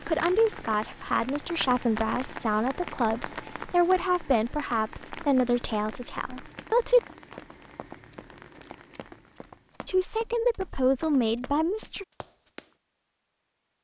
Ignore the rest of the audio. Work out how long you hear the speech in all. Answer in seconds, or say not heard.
9 s.